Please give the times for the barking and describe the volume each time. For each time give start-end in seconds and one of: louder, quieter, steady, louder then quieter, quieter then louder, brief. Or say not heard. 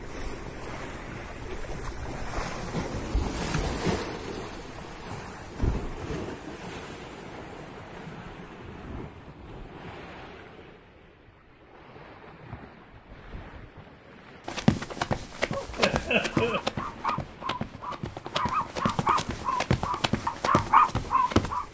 15.5-21.6 louder.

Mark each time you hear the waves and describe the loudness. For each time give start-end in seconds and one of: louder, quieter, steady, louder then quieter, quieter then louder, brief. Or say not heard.
0.0-21.6 quieter.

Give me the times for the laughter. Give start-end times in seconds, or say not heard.
15.8-16.6.